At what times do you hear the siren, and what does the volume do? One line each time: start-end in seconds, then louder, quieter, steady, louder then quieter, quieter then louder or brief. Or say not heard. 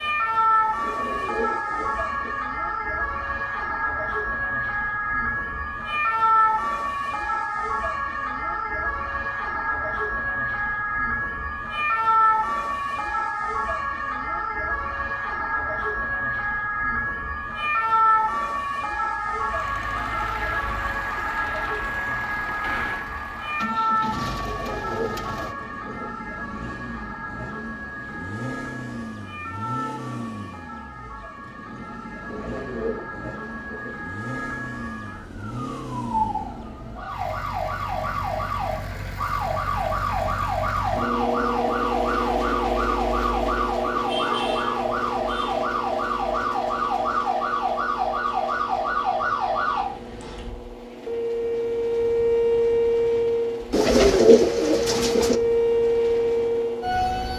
0.0-57.3 quieter then louder.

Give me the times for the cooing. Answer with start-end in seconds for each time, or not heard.
0.8-2.4, 24.4-26.1, 32.2-34.0, 53.7-55.4.